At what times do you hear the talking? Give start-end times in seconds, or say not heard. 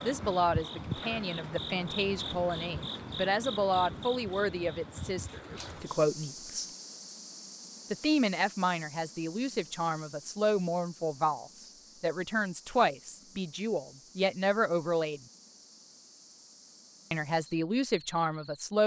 0.0-6.7, 7.9-15.2, 17.1-18.8.